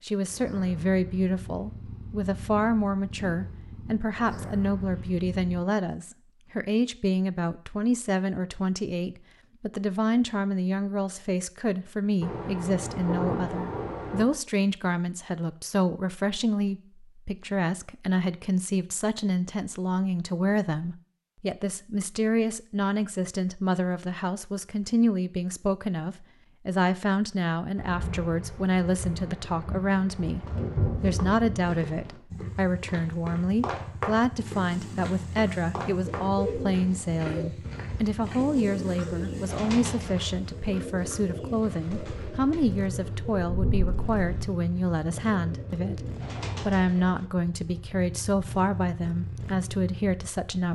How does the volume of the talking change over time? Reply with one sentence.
The volume of the talking stays about the same.